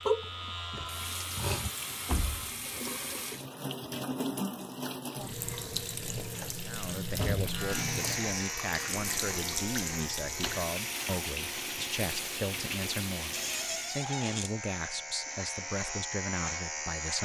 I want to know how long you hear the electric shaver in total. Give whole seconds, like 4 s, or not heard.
12 s.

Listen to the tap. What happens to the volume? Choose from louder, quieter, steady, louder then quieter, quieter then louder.
steady.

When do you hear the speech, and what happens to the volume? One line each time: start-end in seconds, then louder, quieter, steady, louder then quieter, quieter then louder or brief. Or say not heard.
6.6-17.1 steady.